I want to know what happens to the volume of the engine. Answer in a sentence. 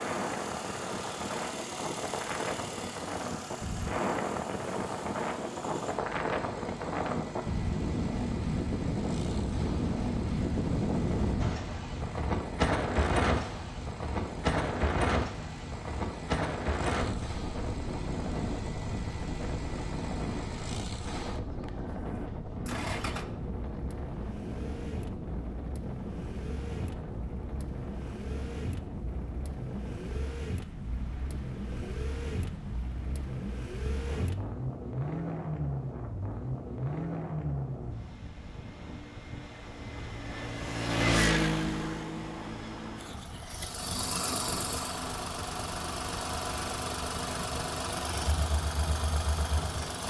The loudness of the engine goes up.